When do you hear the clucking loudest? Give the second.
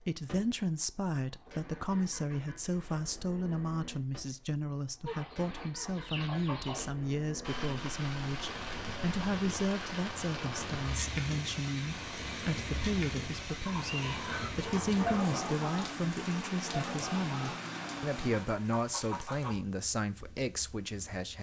15 s.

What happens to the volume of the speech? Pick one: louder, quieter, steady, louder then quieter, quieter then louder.
steady.